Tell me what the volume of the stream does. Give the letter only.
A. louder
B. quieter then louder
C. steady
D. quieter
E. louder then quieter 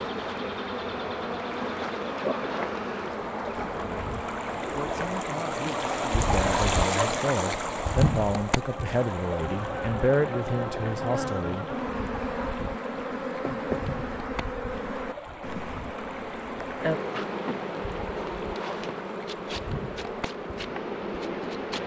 E.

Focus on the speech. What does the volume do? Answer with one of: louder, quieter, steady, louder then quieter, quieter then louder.
louder.